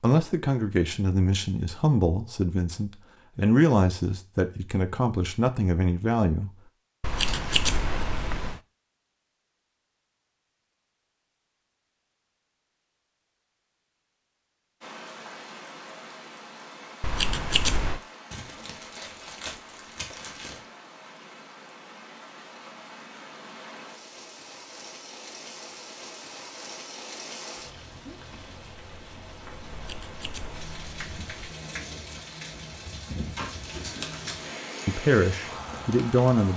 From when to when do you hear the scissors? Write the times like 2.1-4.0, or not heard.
7.0-8.6, 17.0-18.0, 29.7-31.6.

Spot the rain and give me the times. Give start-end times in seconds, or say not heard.
14.8-36.5.